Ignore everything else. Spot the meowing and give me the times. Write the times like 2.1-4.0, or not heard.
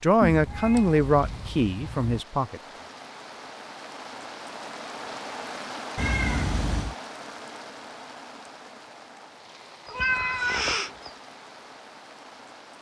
0.2-2.1, 6.0-7.0, 9.8-11.1.